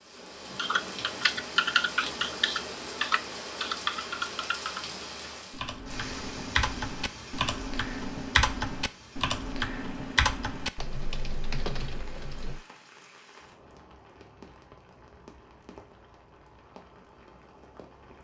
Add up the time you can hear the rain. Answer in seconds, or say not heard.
18 s.